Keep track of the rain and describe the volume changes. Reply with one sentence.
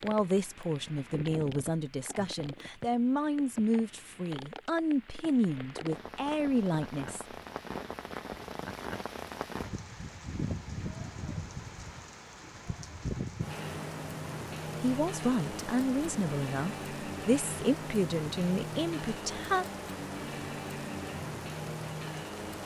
The volume of the rain goes up.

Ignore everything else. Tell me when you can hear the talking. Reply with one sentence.
The talking can be heard from 0.0 to 7.2 s and from 14.8 to 19.6 s.